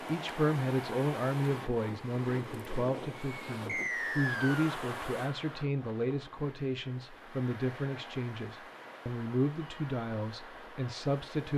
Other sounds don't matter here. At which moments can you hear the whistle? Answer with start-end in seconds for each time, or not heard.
3.6-4.7.